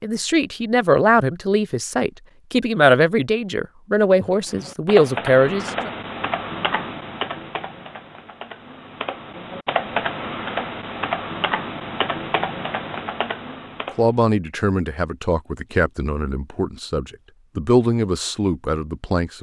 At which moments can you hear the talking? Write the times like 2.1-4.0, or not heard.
0.0-5.9, 13.9-19.3.